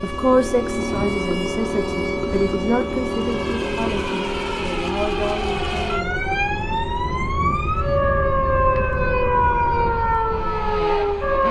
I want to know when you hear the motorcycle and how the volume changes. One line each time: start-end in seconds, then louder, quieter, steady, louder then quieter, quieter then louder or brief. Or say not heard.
0.0-11.4 quieter.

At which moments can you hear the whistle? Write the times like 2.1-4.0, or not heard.
not heard.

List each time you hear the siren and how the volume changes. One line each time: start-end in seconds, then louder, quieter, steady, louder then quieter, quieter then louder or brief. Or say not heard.
0.0-11.4 louder.